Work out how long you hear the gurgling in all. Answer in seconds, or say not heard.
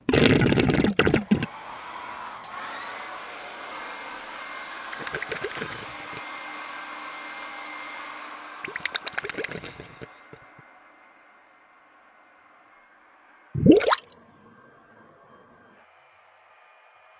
5 s.